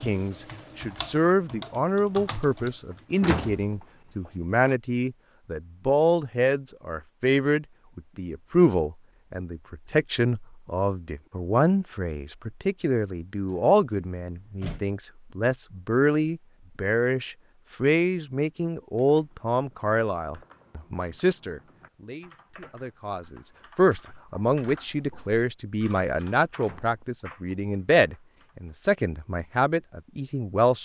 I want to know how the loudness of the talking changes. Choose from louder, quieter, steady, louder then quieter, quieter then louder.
steady.